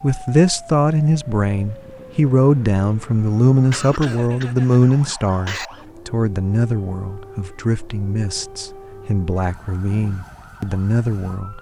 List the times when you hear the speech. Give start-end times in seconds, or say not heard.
0.0-11.5.